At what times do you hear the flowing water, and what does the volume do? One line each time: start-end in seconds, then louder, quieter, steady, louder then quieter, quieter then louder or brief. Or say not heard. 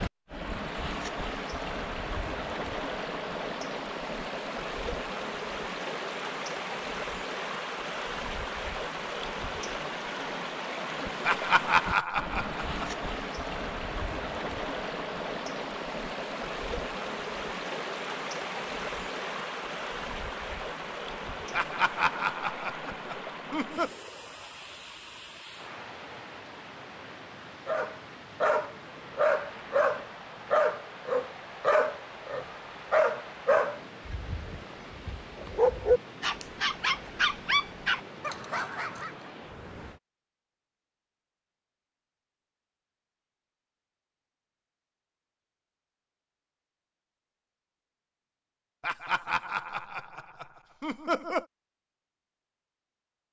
0.0-40.0 quieter.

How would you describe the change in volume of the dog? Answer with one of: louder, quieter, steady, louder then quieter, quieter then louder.
steady.